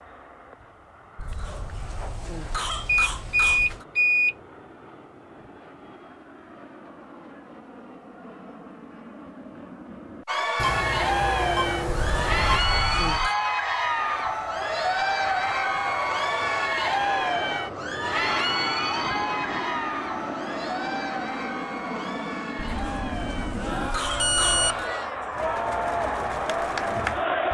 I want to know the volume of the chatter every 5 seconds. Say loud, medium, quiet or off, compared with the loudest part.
off, off, loud, loud, medium, loud.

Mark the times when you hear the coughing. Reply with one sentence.
You can hear the coughing from 1.1 to 3.9 s, from 11.8 to 13.3 s and from 22.6 to 24.9 s.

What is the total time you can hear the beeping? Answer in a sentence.
You can hear the beeping for 4 seconds altogether.